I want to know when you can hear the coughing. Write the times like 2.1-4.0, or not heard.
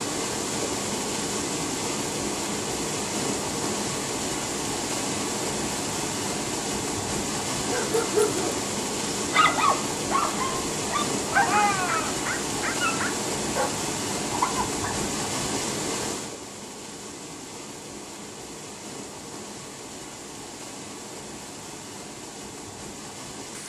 not heard.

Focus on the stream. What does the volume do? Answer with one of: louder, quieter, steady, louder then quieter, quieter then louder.
quieter.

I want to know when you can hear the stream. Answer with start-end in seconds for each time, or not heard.
0.0-23.6.